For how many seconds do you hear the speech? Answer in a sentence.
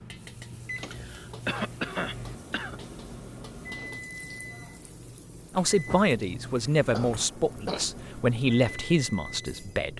The speech can be heard for 4 seconds in total.